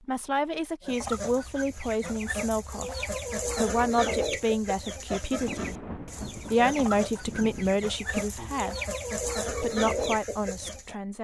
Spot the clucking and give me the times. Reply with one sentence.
You can hear the clucking from 0.8 to 10.9 s.